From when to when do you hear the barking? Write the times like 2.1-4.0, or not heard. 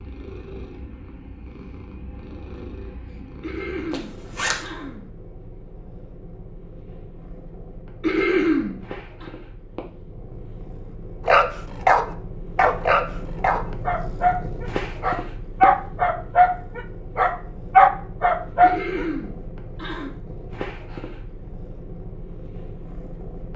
11.2-19.1.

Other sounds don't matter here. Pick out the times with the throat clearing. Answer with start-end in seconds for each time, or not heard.
3.4-5.1, 8.0-9.2, 18.6-20.1.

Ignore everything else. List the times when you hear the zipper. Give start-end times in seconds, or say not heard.
3.9-4.7.